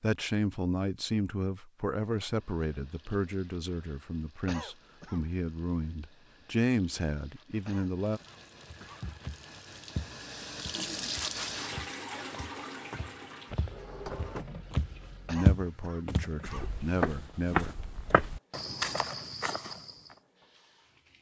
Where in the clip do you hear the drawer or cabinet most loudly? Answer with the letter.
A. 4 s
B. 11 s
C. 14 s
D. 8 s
C.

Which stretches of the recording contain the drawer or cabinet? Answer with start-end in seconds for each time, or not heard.
13.6-15.4.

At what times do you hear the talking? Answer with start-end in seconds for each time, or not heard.
0.0-8.2, 15.2-17.8.